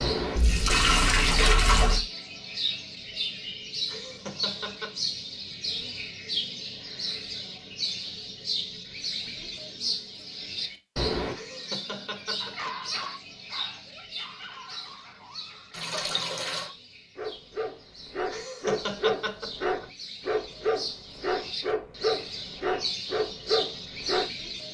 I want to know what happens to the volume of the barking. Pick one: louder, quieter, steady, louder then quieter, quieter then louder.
louder.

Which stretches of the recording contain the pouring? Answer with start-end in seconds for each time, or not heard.
0.3-2.0, 15.7-16.7.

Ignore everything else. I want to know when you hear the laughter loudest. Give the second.
19 s.